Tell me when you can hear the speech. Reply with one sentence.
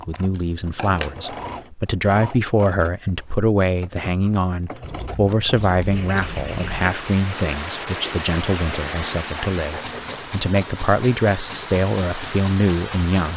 You can hear the speech from 0.0 to 13.3 s.